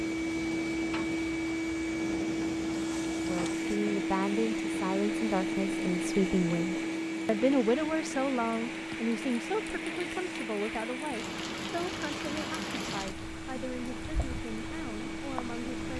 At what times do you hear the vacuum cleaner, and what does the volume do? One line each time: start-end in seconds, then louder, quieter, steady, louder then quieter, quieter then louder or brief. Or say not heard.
0.0-15.9 quieter.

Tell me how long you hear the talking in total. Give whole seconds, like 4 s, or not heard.
13 s.